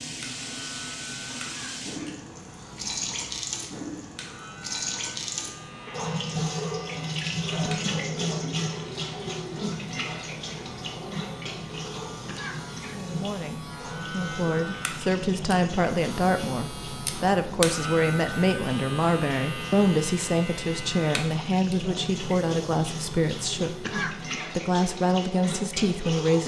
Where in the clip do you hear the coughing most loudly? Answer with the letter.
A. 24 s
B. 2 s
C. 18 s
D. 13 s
A.